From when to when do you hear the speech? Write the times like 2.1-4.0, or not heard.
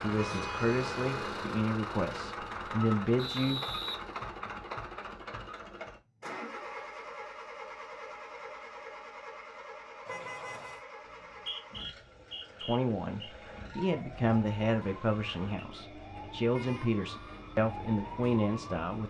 0.0-3.6, 12.6-19.0.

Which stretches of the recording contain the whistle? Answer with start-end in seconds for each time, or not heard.
3.1-4.7, 11.1-13.3.